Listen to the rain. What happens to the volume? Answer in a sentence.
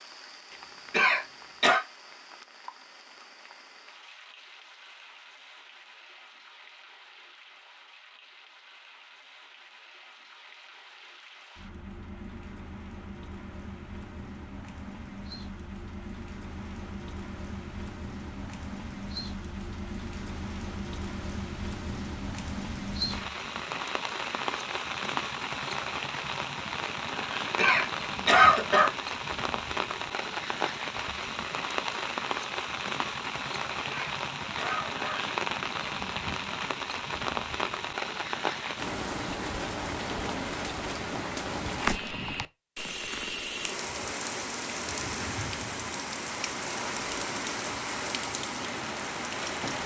The loudness of the rain goes up.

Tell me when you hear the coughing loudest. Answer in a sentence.
The volume of the coughing peaks at 28 seconds.